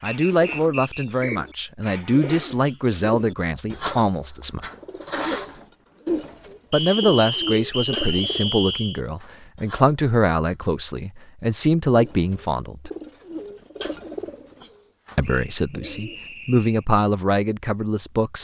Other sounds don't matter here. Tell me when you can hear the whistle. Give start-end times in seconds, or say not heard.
0.1-1.6, 6.7-9.0, 15.2-16.9.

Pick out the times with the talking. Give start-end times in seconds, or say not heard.
0.0-4.7, 6.7-12.9, 15.2-18.3.